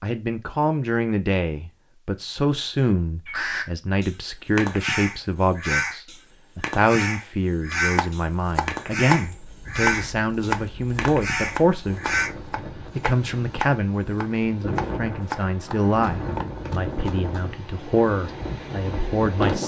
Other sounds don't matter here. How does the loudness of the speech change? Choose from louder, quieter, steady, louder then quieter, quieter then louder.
steady.